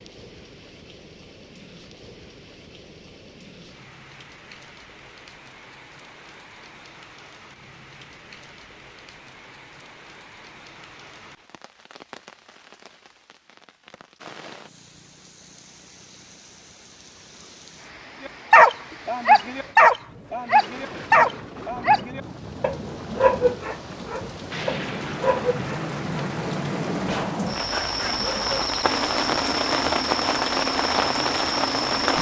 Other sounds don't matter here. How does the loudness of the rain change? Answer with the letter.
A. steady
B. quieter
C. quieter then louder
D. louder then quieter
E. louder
E.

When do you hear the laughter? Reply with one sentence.
You can't hear the laughter here.